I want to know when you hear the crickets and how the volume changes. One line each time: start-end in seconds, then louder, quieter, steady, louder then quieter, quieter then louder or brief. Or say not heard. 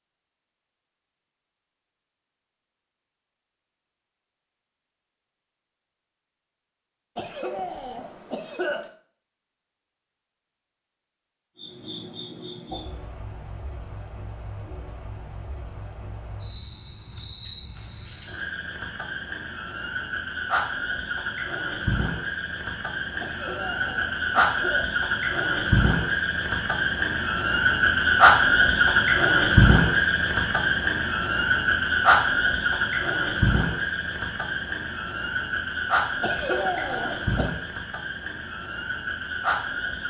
11.6-40.0 louder then quieter.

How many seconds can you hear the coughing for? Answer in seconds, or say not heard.
5 s.